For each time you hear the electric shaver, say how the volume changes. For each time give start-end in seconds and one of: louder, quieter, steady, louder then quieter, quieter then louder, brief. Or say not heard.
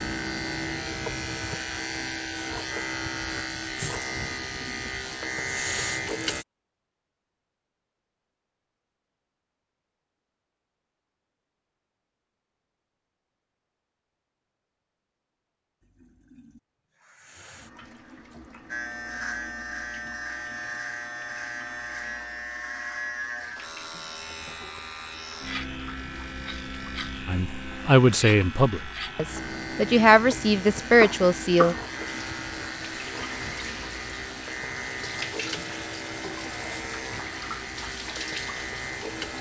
0.0-6.5 steady
18.6-39.3 steady.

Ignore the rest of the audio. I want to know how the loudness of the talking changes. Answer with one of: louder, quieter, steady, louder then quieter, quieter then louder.
quieter then louder.